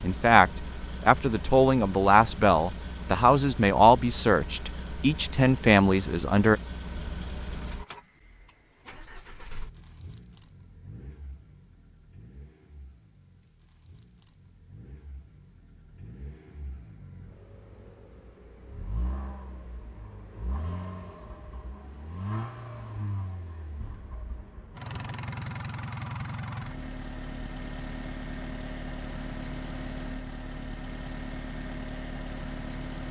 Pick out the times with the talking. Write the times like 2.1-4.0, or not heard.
0.0-6.6.